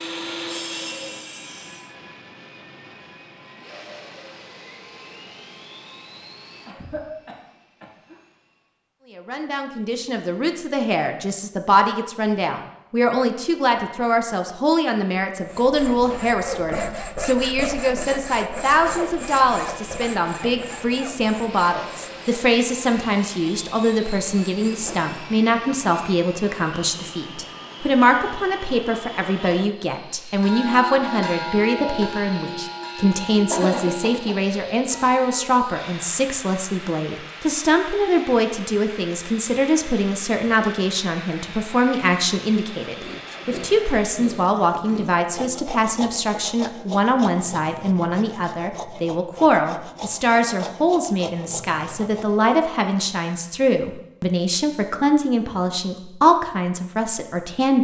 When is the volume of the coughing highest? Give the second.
34 s.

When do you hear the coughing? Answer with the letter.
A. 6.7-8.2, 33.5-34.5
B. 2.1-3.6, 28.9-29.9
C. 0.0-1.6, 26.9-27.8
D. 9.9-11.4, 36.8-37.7
A.